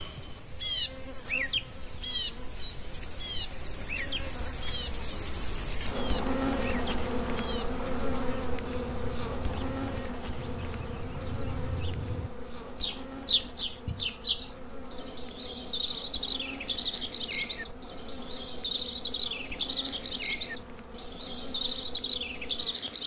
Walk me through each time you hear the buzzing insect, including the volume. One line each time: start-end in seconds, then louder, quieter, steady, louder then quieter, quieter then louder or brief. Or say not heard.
0.0-23.0 louder then quieter.